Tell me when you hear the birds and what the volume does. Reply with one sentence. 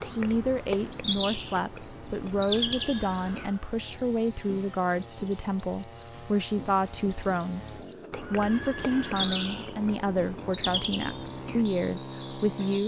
The birds can be heard from 0.0 to 12.8 s, at a steady volume.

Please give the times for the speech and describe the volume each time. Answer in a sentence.
The speech can be heard from 0.1 to 12.8 s, at a steady volume.